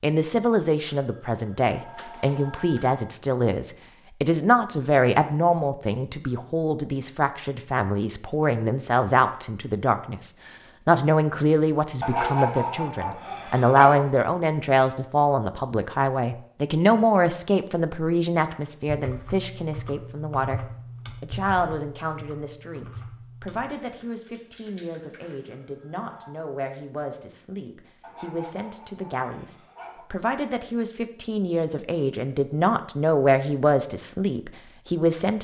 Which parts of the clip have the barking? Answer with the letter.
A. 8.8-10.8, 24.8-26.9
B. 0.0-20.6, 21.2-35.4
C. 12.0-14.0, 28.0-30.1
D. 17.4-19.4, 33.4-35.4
C.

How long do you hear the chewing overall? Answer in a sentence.
You can't hear the chewing here.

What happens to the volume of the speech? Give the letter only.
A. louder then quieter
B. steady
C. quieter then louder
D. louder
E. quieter
C.